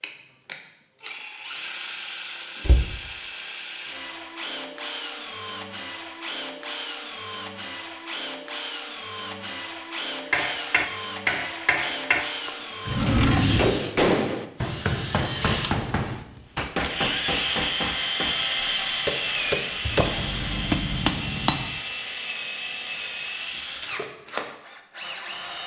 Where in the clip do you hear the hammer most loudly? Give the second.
14 s.